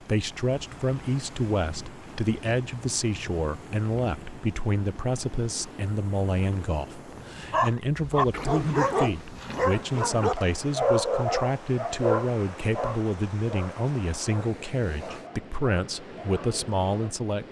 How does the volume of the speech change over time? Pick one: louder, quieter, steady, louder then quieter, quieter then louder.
steady.